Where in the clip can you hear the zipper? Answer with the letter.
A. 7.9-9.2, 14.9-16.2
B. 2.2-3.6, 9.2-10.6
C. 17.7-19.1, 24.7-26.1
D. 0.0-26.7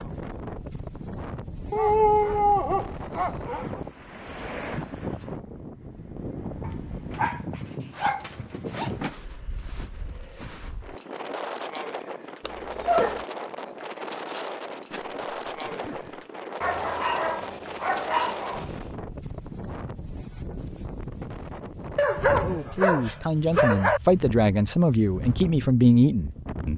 A.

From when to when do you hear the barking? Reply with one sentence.
The barking can be heard from 1.7 to 3.8 s, from 6.7 to 9.2 s, from 12.4 to 13.2 s, from 16.6 to 18.8 s and from 21.9 to 24.0 s.